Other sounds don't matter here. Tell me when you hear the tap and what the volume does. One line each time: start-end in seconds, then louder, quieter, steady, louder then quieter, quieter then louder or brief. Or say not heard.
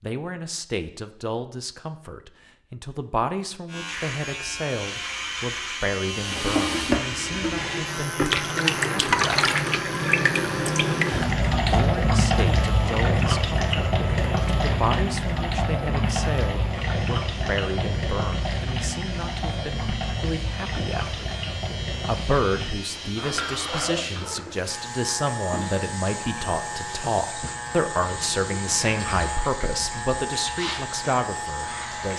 6.0-32.1 quieter.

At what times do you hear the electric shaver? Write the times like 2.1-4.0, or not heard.
3.6-32.1.